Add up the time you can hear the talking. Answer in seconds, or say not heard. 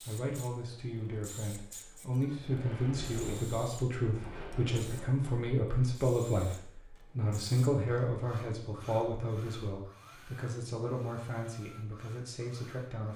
13 s.